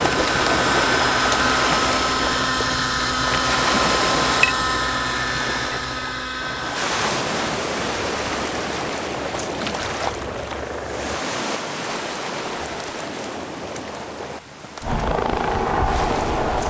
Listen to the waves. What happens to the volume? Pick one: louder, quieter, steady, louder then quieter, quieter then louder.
quieter.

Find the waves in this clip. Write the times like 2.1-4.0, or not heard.
0.0-16.6.